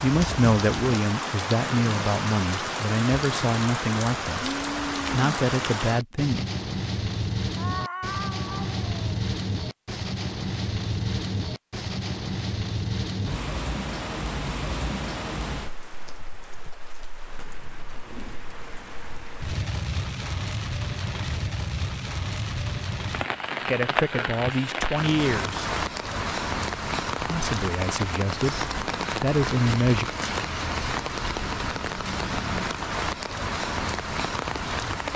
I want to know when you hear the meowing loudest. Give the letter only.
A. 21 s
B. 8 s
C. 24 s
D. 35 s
B.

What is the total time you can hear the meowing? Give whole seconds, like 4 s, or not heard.
2 s.